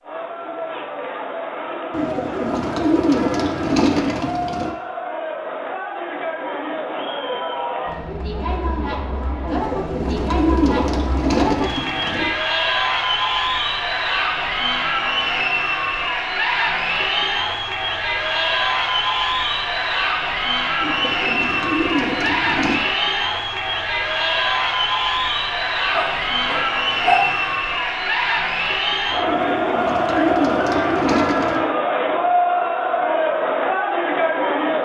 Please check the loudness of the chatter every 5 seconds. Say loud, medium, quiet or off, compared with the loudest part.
medium, medium, loud, loud, loud, loud, loud.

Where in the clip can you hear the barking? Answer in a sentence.
The barking can be heard from 25.9 to 27.6 s.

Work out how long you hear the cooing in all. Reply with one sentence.
The cooing can be heard for 10 seconds in total.